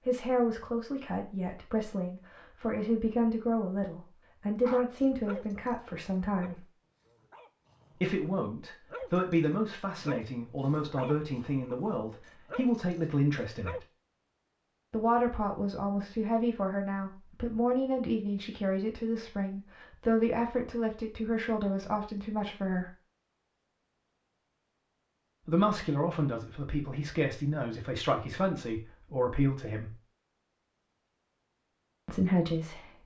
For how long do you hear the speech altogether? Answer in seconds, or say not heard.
26 s.